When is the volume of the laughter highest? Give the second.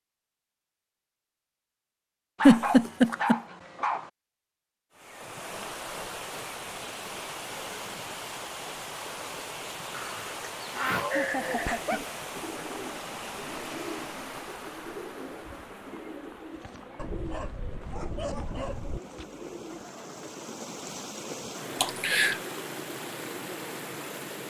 3 s.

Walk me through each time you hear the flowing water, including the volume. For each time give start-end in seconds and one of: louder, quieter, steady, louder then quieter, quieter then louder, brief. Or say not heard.
4.9-24.4 quieter then louder.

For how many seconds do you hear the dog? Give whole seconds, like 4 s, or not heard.
6 s.